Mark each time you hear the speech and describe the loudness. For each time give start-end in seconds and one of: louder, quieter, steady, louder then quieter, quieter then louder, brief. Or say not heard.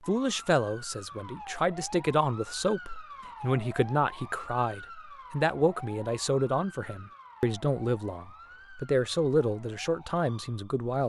0.1-11.0 steady.